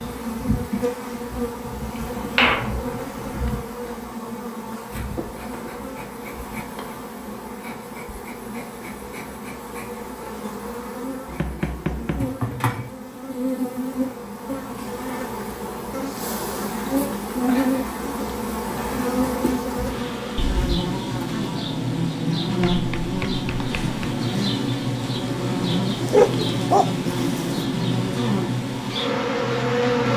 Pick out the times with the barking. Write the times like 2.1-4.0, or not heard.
26.0-27.6.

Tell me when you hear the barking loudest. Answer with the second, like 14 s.
26 s.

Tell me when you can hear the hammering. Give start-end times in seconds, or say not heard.
2.4-3.5, 11.2-12.4, 22.6-24.0.